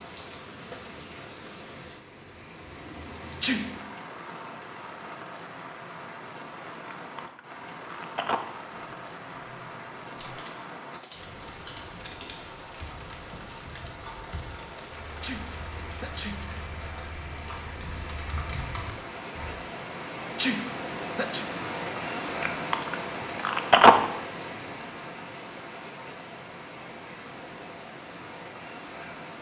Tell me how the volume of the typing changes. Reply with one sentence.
The loudness of the typing goes up.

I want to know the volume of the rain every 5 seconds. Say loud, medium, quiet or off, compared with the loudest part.
medium, medium, medium, medium, loud, medium.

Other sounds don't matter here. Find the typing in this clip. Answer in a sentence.
You can hear the typing from 8.9 to 19.5 s.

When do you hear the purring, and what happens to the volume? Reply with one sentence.
You can't hear the purring here.